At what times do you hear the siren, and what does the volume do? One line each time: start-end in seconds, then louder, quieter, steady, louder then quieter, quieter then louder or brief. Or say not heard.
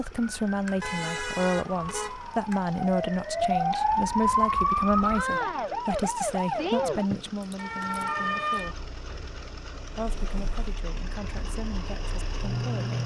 0.0-13.0 louder then quieter.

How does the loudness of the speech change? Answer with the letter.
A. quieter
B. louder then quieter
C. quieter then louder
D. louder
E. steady
A.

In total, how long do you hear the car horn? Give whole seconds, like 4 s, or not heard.
2 s.